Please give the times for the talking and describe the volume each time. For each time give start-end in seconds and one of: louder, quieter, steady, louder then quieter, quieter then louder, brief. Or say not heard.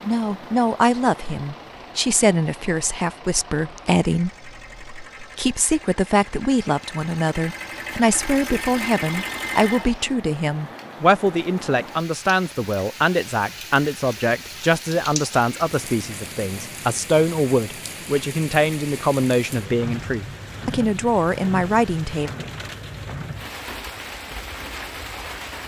0.0-22.3 steady.